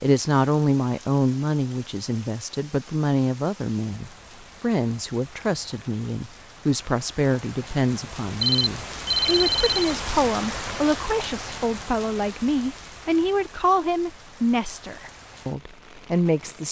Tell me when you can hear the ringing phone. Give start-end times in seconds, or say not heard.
8.4-9.9.